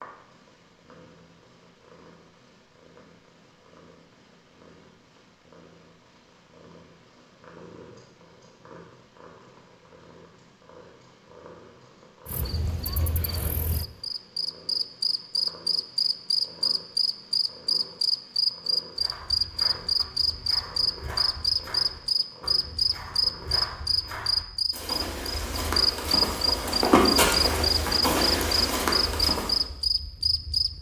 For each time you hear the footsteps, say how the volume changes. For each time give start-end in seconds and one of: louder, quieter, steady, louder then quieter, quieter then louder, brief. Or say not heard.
18.9-29.6 louder.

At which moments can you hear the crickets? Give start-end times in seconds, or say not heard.
12.2-30.7.